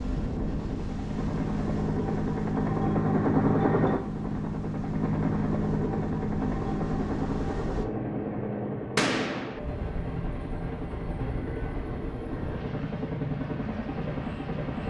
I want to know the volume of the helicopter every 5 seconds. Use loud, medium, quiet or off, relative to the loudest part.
loud, loud, medium.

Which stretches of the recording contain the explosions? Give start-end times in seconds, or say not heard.
8.9-9.6.